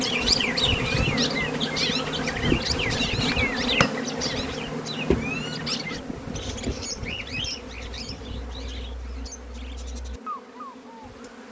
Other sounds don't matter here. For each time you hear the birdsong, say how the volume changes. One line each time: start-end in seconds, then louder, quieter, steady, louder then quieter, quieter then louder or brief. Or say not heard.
0.0-11.4 quieter.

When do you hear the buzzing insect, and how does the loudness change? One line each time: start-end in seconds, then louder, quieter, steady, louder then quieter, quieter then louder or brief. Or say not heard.
0.0-11.4 quieter.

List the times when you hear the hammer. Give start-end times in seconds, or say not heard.
3.3-4.0.